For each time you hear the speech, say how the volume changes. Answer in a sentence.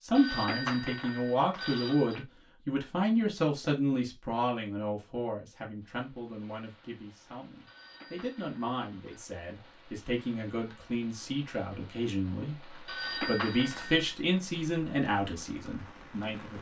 You can hear the speech from 0.1 to 16.5 s, getting quieter then louder.